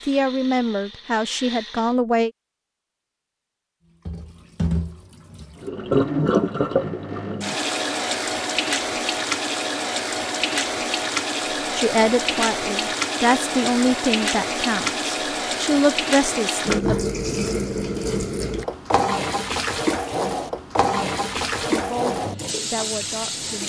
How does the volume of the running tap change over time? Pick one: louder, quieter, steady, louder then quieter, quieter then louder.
steady.